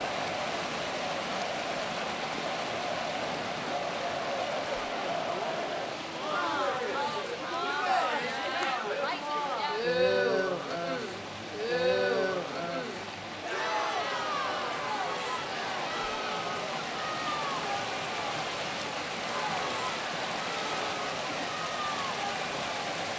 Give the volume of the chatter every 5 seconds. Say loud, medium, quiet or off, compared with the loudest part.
medium, loud, loud, medium, medium.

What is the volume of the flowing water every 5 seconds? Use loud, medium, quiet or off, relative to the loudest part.
loud, medium, medium, loud, loud.